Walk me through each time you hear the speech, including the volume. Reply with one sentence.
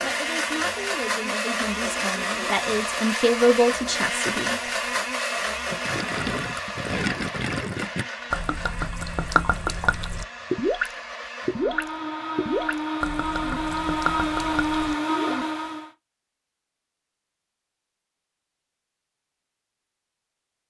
You can hear the speech from 0.0 to 4.6 s, getting louder.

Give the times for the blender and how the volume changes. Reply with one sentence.
You can hear the blender from 0.0 to 15.9 s, getting quieter then louder.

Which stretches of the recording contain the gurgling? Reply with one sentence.
The gurgling can be heard from 5.7 to 15.4 s.